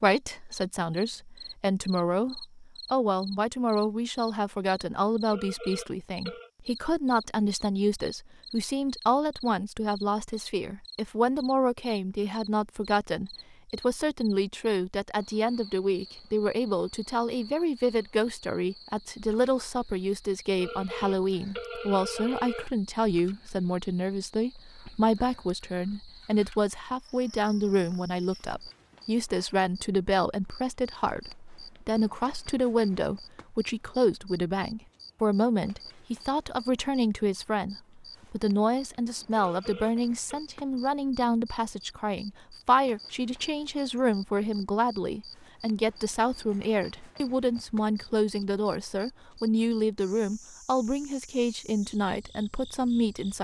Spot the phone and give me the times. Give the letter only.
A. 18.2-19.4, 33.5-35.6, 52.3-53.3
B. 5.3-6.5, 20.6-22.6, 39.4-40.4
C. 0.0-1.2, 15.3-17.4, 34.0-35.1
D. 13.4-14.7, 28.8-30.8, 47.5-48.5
B.